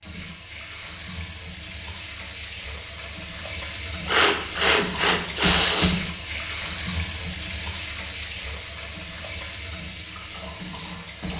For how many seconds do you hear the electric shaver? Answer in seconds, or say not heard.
not heard.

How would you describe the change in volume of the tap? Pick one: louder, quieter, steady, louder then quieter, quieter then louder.
louder then quieter.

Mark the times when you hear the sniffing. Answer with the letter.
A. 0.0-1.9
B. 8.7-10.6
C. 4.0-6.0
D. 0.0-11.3
C.